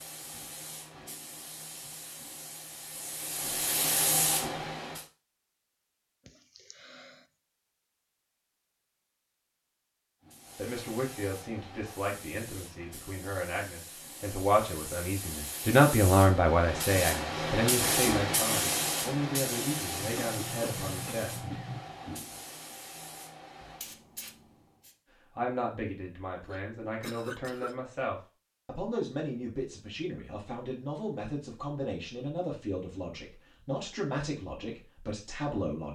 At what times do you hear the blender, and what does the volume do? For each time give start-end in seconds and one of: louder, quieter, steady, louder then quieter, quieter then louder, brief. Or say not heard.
not heard.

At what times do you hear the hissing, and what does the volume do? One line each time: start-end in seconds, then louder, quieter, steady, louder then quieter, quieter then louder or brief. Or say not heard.
0.0-5.0 louder
10.2-24.9 louder then quieter.